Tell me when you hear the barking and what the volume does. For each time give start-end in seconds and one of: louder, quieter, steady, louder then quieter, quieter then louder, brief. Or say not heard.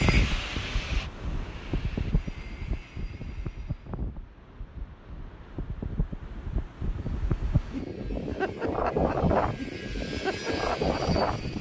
not heard.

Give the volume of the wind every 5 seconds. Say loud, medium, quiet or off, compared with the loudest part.
medium, loud, loud.